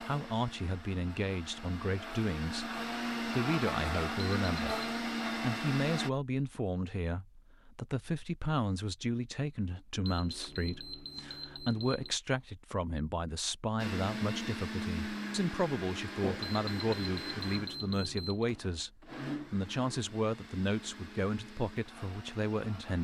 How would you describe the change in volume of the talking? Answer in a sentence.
The volume of the talking stays about the same.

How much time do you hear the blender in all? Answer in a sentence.
The blender can be heard for 15 seconds in total.